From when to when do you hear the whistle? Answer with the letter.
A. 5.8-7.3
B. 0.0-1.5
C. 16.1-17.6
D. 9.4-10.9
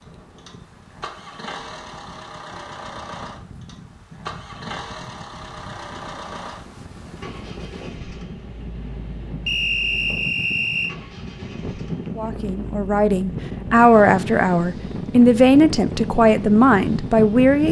D.